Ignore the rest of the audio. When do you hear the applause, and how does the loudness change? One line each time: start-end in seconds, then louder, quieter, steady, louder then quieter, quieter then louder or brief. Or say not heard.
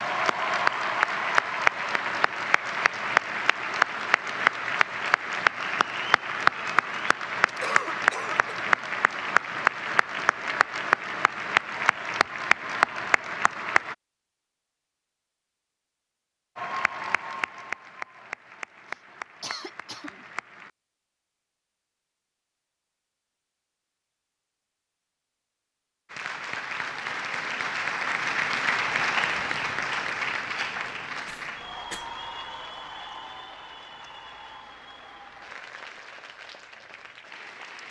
0.0-13.9 steady
16.6-20.7 quieter
26.1-37.8 quieter.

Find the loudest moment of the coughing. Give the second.
8 s.